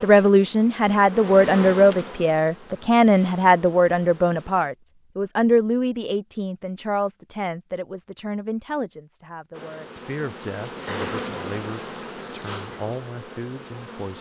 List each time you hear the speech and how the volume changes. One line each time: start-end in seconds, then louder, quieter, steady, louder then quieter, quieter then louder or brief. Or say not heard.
0.0-14.1 quieter.